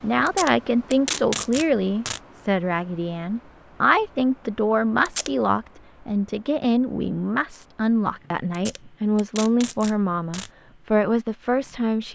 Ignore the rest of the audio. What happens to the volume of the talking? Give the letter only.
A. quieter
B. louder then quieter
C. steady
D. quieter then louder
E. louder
C.